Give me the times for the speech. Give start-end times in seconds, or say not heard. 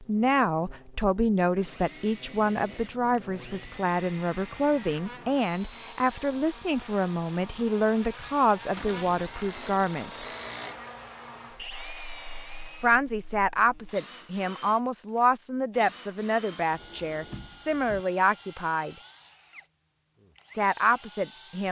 0.0-10.2, 12.8-18.9, 20.5-21.6.